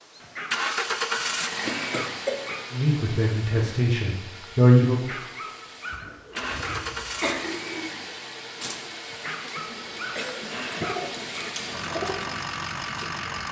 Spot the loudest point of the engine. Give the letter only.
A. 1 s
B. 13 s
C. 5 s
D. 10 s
A.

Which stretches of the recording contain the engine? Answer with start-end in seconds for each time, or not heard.
0.0-13.4.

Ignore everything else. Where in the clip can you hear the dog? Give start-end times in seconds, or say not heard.
0.2-2.6, 4.9-7.4, 9.1-11.6.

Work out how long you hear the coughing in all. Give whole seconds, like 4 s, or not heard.
5 s.